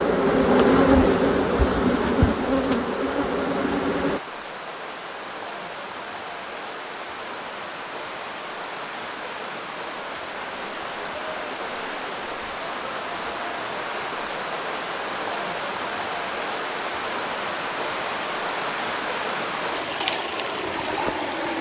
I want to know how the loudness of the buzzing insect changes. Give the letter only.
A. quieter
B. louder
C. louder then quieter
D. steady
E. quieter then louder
A.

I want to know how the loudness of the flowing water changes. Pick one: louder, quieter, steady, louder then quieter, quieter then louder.
louder.